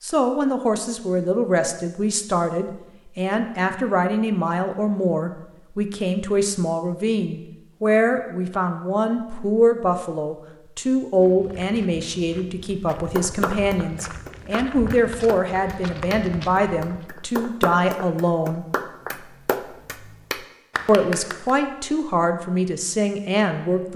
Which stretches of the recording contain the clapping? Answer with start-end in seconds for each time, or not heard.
12.9-21.5.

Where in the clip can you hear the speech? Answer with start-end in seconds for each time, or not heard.
0.0-18.6, 20.9-23.9.